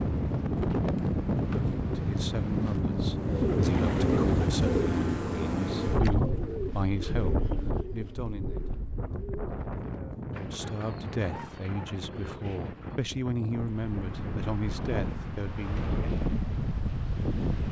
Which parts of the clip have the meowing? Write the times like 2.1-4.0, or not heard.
not heard.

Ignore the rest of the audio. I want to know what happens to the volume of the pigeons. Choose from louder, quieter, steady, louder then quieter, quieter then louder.
quieter.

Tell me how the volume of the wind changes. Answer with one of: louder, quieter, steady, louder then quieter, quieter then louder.
quieter then louder.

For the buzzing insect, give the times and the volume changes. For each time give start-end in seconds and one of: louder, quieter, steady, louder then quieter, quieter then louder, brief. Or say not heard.
not heard.